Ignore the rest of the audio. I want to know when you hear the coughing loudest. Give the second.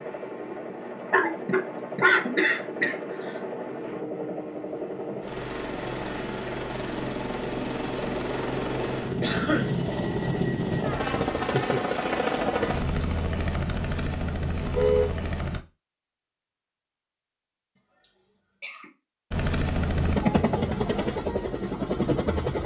2 s.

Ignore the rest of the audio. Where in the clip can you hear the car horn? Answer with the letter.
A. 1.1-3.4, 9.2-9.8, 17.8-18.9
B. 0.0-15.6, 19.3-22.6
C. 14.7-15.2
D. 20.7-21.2
C.